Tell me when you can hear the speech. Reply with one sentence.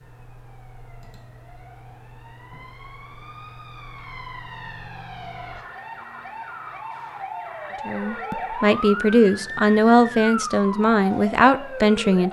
The speech can be heard from 7.8 to 12.2 s.